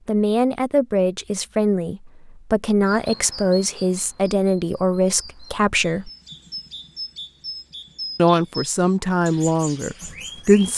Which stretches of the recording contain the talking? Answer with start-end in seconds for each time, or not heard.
0.1-6.1, 8.2-10.7.